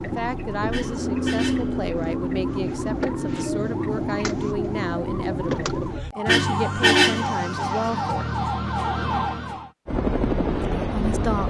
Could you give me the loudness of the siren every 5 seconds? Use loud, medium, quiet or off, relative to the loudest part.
loud, loud, off.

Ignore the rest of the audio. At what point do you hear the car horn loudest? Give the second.
7 s.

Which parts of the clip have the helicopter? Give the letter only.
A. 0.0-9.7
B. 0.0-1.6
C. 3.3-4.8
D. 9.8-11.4
D.